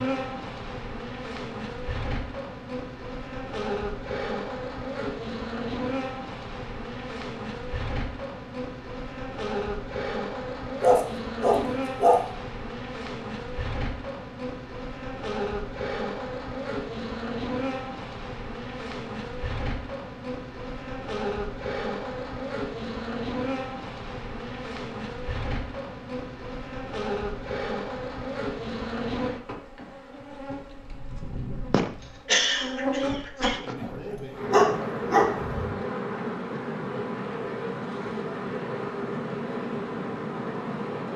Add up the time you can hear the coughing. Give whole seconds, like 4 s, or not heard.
2 s.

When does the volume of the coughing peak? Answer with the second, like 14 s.
32 s.